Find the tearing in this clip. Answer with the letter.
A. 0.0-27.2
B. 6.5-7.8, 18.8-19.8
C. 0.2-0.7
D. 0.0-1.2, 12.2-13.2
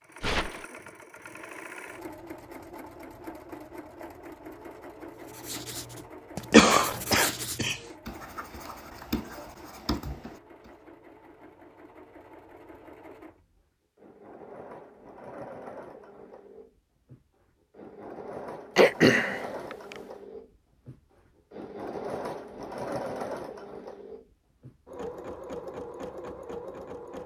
C.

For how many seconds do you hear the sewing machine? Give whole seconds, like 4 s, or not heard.
27 s.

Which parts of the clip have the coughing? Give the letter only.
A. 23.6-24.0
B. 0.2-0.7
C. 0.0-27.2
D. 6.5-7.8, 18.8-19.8
D.